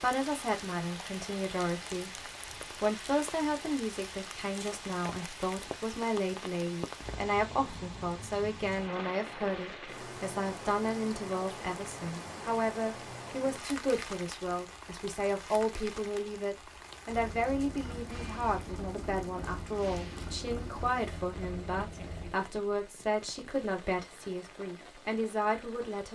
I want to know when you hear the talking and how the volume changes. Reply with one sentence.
You can hear the talking from 0.0 to 26.1 s, at a steady volume.